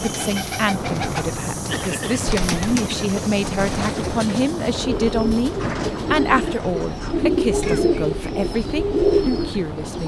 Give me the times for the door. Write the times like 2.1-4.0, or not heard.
5.5-7.3.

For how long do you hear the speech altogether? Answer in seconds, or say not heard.
10 s.